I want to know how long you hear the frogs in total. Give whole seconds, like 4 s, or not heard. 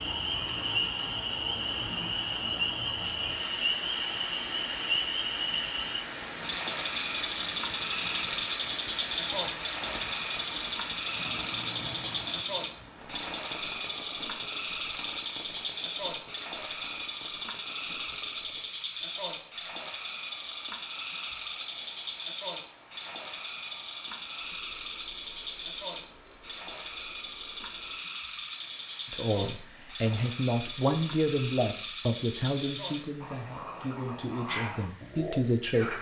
36 s.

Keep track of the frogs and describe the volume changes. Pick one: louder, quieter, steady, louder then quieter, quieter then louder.
quieter.